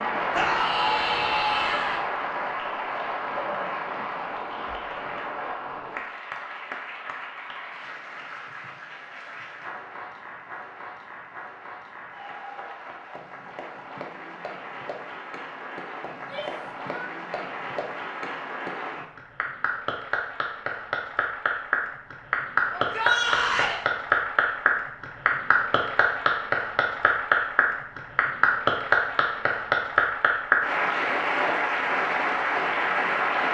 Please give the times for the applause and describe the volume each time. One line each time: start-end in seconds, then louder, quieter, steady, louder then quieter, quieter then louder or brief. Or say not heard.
0.0-33.4 quieter then louder.